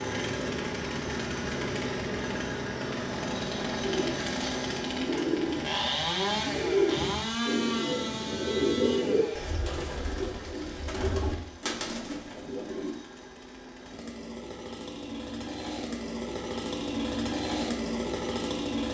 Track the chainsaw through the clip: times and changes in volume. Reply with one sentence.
You can hear the chainsaw from 0.0 to 18.8 s, getting quieter then louder.